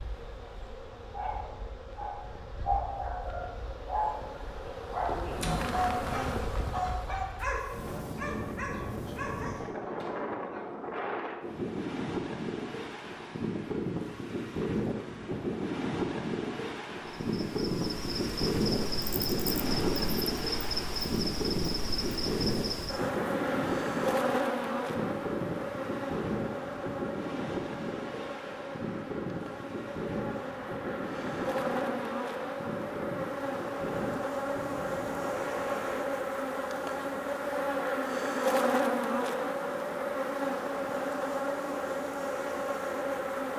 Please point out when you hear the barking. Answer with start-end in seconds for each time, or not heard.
1.1-4.2, 4.9-9.7.